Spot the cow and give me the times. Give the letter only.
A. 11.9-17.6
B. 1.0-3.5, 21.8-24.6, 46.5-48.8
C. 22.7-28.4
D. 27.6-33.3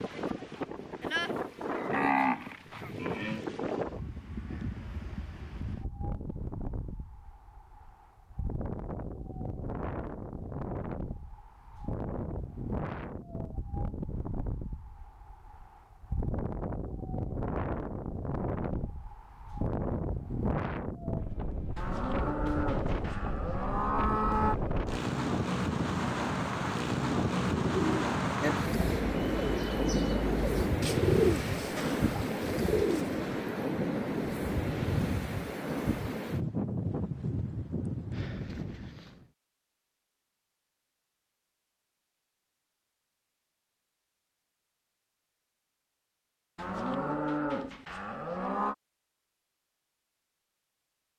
B.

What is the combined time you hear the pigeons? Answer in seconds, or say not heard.
6 s.